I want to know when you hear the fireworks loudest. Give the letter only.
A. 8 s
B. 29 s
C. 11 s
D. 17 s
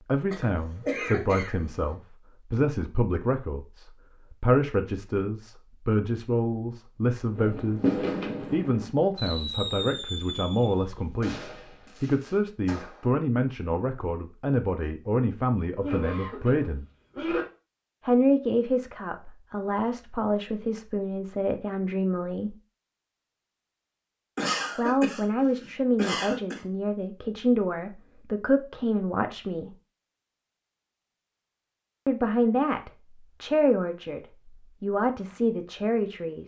A.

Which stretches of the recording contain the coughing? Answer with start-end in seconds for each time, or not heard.
0.3-1.9, 15.8-17.4, 24.4-26.6.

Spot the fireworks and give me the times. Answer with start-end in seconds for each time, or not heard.
7.3-13.1.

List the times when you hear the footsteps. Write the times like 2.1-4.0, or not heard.
not heard.